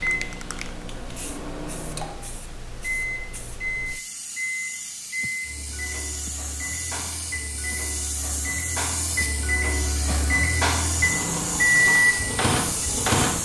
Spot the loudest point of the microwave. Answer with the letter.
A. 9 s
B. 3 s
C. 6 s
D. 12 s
D.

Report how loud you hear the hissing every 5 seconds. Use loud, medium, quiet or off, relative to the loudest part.
medium, loud, loud.